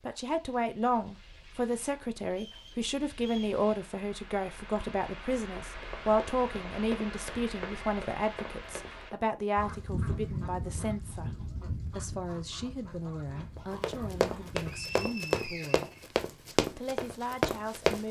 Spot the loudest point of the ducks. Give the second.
10 s.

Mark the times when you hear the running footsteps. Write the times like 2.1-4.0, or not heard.
5.8-9.2, 13.6-18.0.